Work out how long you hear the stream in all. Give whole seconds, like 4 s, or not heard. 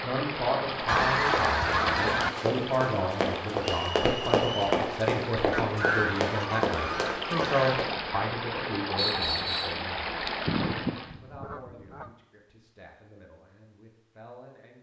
11 s.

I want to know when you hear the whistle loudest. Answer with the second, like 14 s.
9 s.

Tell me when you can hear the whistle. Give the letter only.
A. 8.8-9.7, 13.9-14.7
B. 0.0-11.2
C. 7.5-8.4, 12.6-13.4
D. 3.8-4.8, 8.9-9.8
D.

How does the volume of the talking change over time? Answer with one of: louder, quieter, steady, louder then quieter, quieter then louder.
quieter.